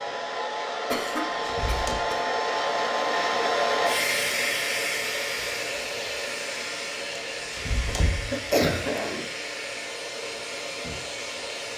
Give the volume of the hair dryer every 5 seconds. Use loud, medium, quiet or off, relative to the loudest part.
loud, medium, medium.